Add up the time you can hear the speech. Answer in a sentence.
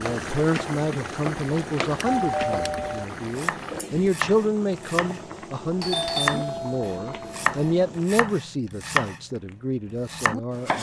You can hear the speech for 11 seconds altogether.